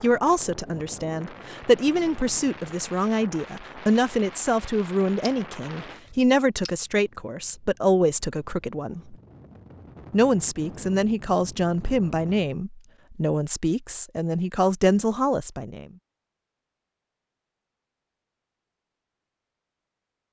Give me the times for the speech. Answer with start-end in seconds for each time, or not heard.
0.0-9.2, 10.1-15.8.